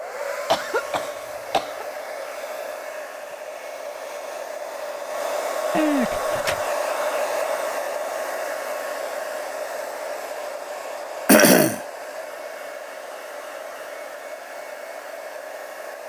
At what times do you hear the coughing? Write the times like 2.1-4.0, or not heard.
0.5-1.9, 5.7-6.6, 11.2-11.8.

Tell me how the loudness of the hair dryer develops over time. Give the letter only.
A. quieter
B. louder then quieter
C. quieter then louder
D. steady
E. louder
B.